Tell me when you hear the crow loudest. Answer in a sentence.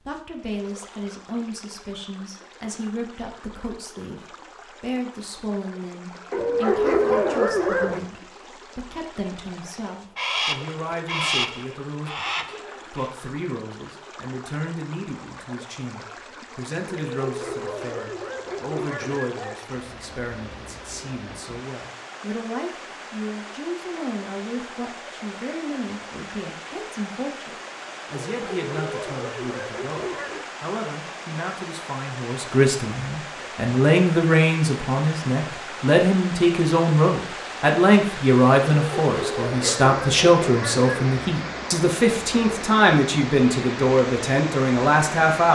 The loudest moment of the crow is at 11 seconds.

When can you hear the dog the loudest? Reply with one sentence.
The volume of the dog peaks at 7 seconds.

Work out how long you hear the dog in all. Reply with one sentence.
The dog can be heard for 9 seconds in total.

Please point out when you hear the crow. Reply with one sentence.
The crow can be heard from 10.2 to 13.1 s.